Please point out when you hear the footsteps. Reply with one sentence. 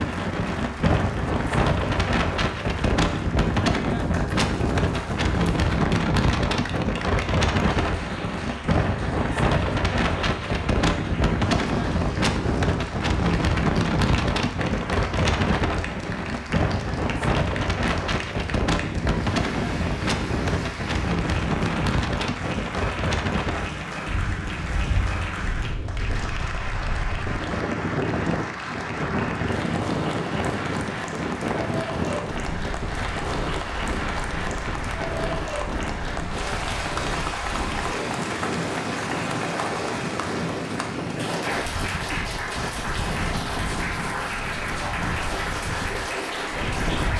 The footsteps can't be heard in this clip.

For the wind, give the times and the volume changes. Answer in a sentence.
You can hear the wind from 0.0 to 47.1 s, getting quieter.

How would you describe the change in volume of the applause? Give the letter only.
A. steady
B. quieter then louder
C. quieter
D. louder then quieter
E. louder
E.